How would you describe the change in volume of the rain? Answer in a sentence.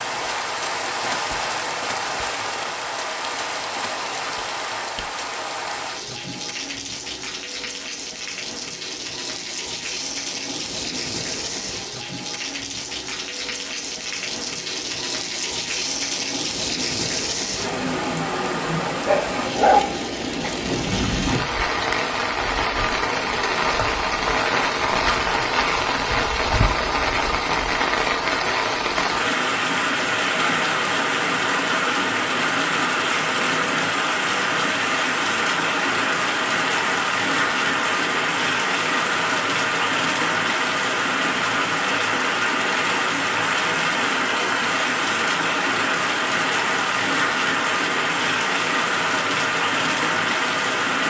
The volume of the rain goes up.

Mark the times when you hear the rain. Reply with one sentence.
The rain can be heard from 0.0 to 51.0 s.